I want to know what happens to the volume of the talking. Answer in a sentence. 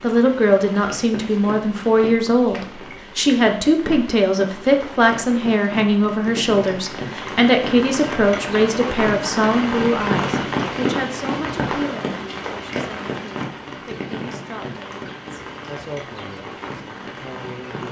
The volume of the talking goes down.